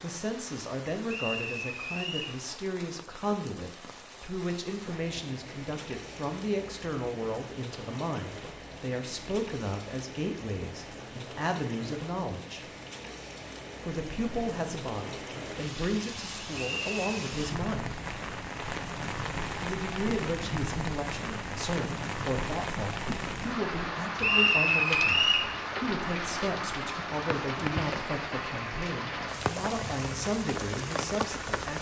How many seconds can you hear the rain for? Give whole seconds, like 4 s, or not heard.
32 s.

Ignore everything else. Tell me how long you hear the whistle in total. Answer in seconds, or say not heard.
3 s.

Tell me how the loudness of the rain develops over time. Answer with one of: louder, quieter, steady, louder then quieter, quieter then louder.
louder.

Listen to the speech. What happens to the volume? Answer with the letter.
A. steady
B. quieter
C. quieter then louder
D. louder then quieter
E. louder
A.